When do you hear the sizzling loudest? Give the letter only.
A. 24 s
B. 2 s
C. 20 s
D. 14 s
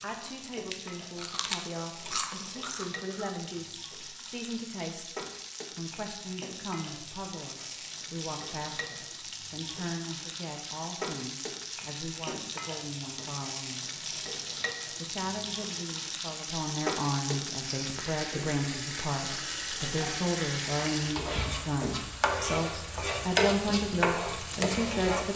A.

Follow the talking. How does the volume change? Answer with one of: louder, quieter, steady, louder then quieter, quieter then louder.
louder.